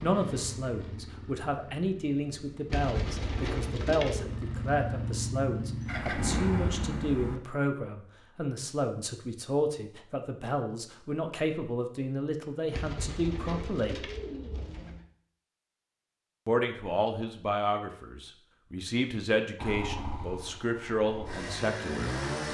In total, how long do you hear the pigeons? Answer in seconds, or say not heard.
4 s.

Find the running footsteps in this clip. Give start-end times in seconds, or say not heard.
not heard.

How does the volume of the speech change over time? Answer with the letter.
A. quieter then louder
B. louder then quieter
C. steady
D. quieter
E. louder
C.